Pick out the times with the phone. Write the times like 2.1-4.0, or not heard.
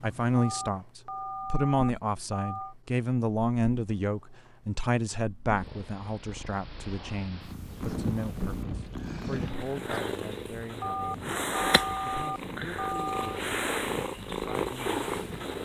0.3-2.8, 10.8-13.4.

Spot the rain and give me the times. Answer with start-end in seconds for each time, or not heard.
7.5-15.6.